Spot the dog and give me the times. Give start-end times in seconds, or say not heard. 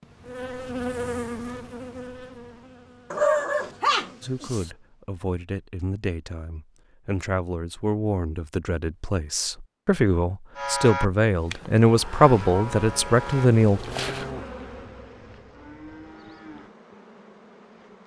3.1-4.7.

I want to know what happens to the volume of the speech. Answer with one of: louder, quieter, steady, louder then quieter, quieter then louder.
louder.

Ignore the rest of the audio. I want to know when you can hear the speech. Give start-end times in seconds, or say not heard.
4.2-13.8.